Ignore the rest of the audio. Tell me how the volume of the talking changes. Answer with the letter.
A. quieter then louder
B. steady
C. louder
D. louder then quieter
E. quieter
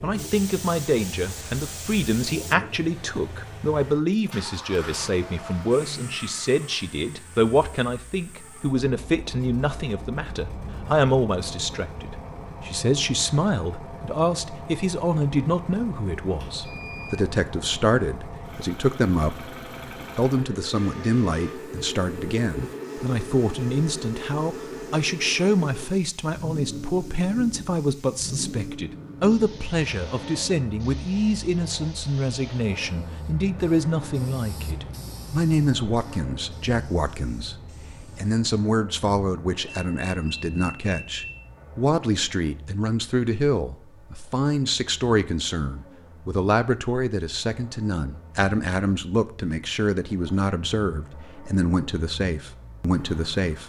B.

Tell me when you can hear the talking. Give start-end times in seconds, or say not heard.
0.0-19.4, 20.1-53.6.